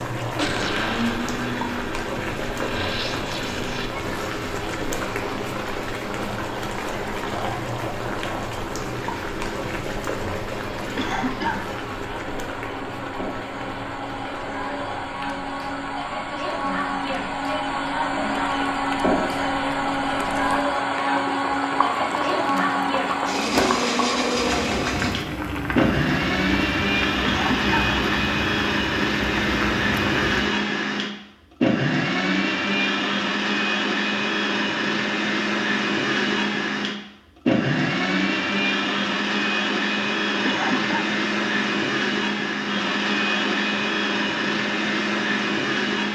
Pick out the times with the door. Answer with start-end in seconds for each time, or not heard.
not heard.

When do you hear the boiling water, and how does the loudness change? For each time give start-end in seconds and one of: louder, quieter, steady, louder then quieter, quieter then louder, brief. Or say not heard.
0.0-30.6 quieter then louder.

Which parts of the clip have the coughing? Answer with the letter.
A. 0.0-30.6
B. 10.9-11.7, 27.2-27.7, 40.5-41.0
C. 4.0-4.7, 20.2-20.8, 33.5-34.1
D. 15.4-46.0
B.